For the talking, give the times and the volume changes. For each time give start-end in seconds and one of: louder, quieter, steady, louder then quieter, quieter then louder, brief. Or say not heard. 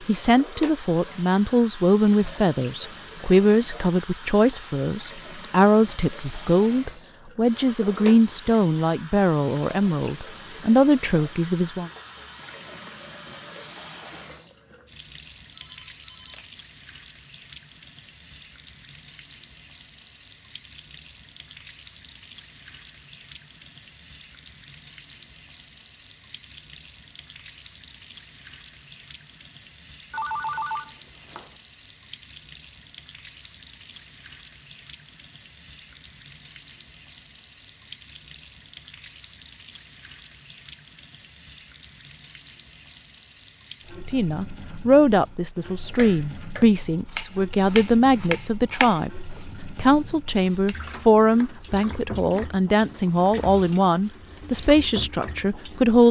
0.1-11.9 steady
44.0-56.0 steady.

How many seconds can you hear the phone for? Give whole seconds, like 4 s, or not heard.
2 s.